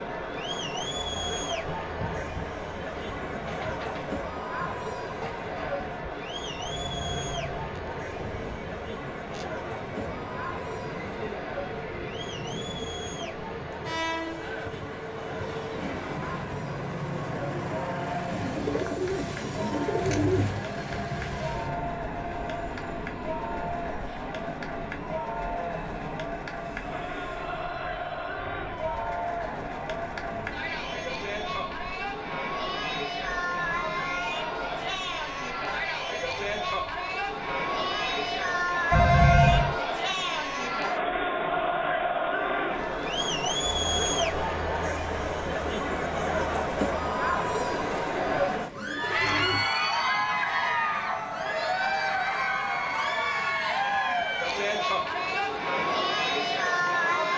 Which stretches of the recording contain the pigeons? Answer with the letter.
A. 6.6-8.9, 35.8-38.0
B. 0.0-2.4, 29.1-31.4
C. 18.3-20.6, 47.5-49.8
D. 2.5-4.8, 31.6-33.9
C.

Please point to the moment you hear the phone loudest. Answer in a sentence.
The loudest moment of the phone is at 39 seconds.